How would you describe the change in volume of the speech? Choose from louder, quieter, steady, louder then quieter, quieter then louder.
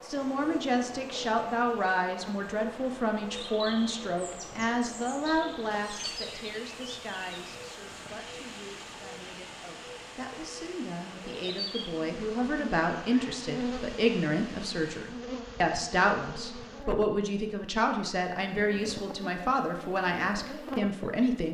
quieter then louder.